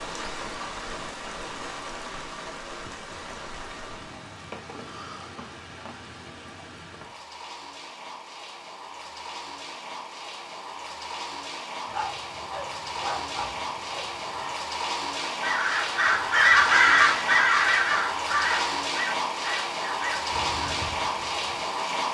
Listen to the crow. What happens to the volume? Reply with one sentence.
The loudness of the crow goes down.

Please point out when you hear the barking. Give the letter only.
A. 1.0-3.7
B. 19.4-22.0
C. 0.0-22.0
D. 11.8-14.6
D.